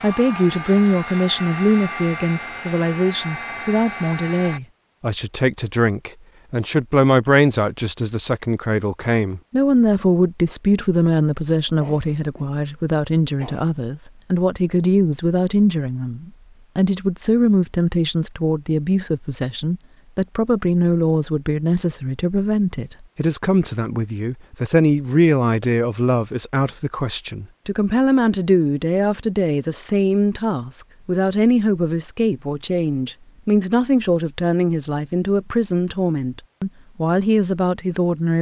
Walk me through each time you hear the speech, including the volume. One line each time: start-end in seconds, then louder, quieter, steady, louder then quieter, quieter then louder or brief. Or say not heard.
0.0-38.3 steady.